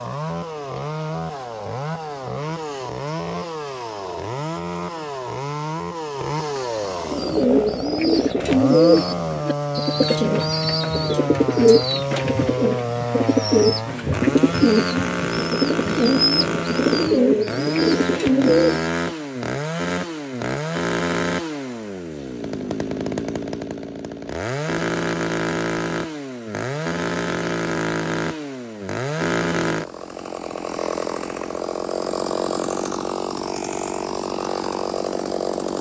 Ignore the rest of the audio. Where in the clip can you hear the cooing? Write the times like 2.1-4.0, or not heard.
7.0-18.9.